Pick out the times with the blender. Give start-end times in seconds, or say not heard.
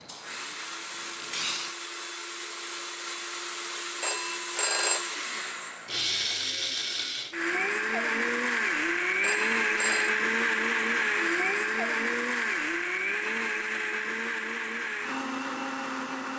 0.0-16.3.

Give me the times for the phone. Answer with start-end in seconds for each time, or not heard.
4.0-5.2, 9.2-10.2.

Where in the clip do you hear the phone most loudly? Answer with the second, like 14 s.
5 s.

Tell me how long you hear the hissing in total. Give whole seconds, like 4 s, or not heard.
2 s.